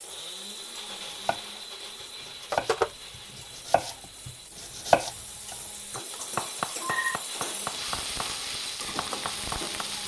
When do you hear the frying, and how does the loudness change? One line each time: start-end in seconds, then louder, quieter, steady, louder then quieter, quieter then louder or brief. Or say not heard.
0.0-10.0 louder.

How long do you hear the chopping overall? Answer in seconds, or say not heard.
8 s.